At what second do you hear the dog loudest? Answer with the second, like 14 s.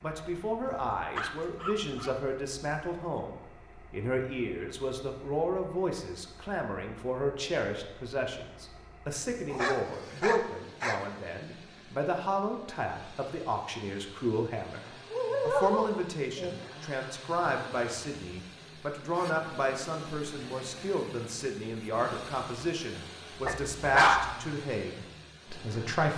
24 s.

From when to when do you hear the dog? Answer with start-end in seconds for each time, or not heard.
0.8-2.1, 9.5-11.1, 15.1-16.6, 23.4-24.4.